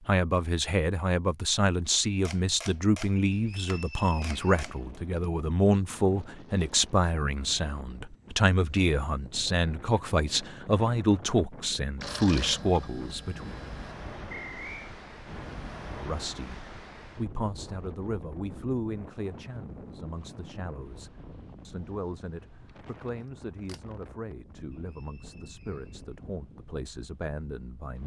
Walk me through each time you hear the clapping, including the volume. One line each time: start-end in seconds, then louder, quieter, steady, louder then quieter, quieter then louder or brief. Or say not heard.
not heard.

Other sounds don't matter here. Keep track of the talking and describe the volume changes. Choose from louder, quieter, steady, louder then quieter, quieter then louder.
quieter.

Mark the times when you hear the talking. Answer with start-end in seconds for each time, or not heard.
0.1-13.5, 15.9-28.0.